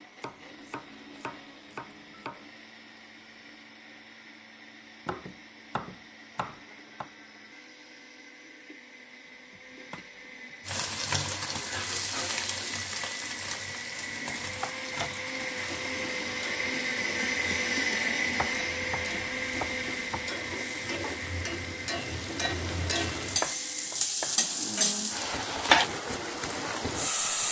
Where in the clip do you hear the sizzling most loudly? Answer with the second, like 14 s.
25 s.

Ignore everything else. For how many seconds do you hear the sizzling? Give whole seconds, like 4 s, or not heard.
17 s.